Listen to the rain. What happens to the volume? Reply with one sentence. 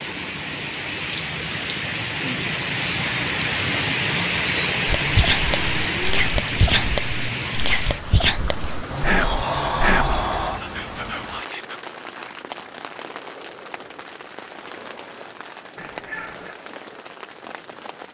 The volume of the rain goes down.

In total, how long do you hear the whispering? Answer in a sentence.
You can hear the whispering for 7 seconds altogether.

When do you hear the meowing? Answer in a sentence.
You can hear the meowing from 5.5 to 6.3 s and from 15.8 to 16.6 s.